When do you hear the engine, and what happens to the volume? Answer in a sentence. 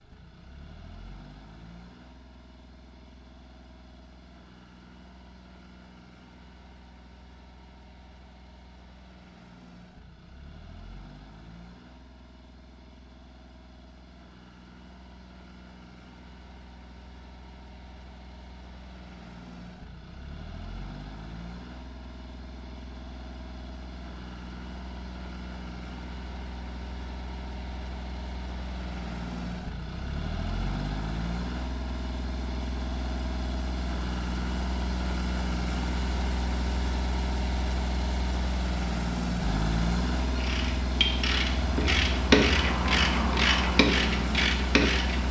The engine can be heard from 0.0 to 45.2 s, getting louder.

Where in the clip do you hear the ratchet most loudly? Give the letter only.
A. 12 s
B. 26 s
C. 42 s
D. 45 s
C.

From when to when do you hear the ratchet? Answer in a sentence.
The ratchet can be heard from 40.2 to 45.2 s.